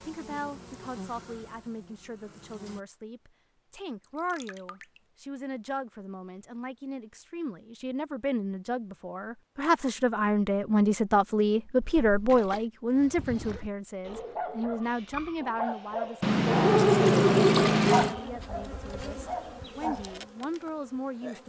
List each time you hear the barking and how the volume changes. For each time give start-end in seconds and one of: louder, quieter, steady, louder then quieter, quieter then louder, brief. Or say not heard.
12.9-20.2 louder then quieter.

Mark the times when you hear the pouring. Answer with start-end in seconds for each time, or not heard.
4.3-5.0, 11.8-12.7, 16.2-18.1.